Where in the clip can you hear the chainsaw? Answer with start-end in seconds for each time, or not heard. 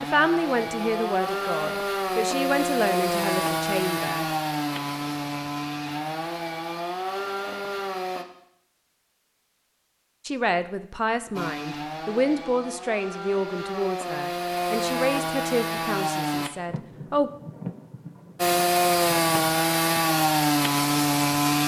0.0-8.2, 11.3-16.5, 18.4-21.6.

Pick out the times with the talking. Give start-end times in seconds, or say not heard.
0.0-4.2, 10.2-17.3.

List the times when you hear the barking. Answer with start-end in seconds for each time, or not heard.
not heard.